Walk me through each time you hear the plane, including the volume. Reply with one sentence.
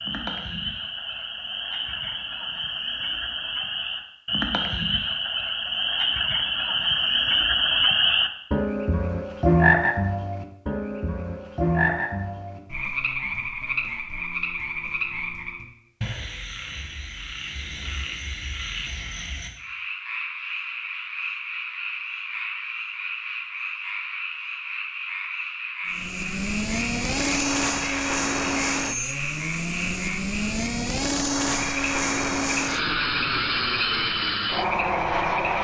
You can hear the plane from 25.9 to 35.6 s, at a steady volume.